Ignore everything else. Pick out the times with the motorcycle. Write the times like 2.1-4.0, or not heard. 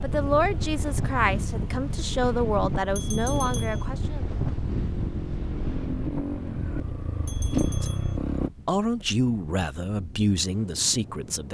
0.0-8.5.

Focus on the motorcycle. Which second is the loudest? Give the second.
8 s.